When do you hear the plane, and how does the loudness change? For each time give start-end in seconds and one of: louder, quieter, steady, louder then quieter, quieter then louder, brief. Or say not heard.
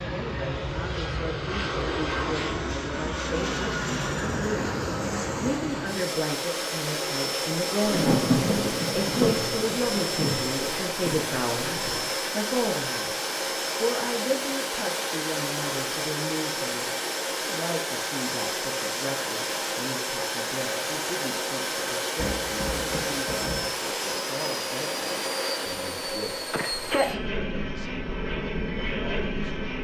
0.0-29.8 steady.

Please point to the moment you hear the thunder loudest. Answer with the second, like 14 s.
8 s.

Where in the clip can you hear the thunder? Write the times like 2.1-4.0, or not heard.
7.8-12.1, 22.1-23.6.